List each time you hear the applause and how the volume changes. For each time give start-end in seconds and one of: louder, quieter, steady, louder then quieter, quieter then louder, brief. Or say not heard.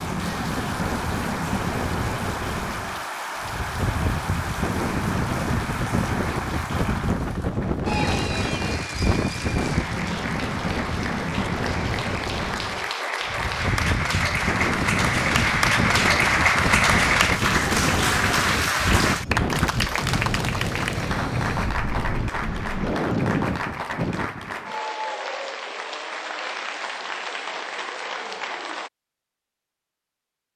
0.0-28.9 louder then quieter.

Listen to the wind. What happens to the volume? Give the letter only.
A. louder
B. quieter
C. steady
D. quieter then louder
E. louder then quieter
C.